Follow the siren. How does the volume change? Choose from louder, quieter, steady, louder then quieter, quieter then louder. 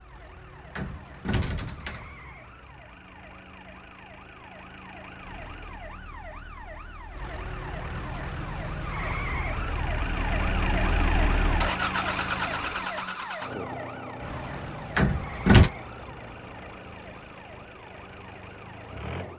louder then quieter.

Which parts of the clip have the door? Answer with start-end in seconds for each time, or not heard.
0.8-2.1, 14.9-15.7.